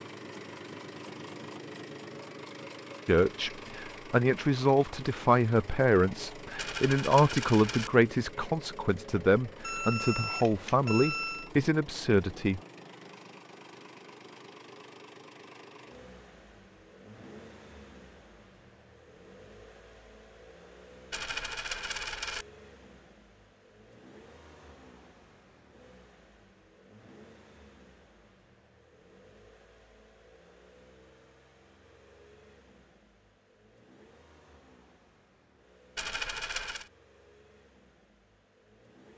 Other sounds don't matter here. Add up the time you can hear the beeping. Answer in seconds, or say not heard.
2 s.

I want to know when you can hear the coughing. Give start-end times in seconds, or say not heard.
not heard.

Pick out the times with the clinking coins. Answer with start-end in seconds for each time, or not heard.
6.5-7.9, 21.1-22.4, 36.0-36.9.